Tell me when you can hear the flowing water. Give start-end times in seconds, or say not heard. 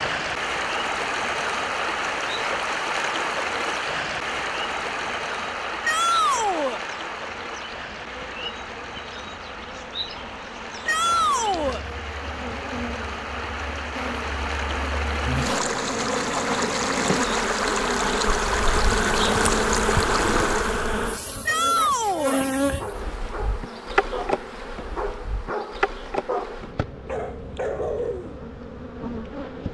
0.0-20.9.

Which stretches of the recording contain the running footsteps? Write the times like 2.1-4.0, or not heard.
not heard.